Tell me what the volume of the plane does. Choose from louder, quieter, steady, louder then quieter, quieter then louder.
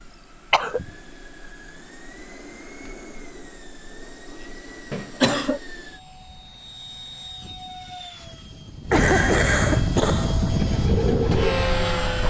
louder.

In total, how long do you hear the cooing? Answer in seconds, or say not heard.
2 s.